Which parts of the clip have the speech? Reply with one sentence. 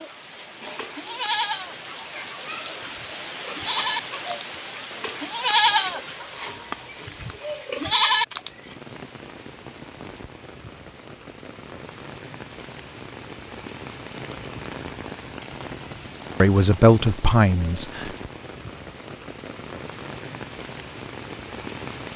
You can hear the speech from 16.4 to 18.1 s.